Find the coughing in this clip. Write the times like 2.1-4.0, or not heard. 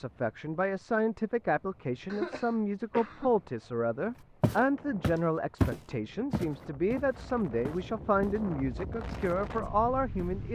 2.1-3.3.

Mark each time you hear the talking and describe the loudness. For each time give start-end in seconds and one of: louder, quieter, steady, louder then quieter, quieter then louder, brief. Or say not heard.
0.0-10.5 steady.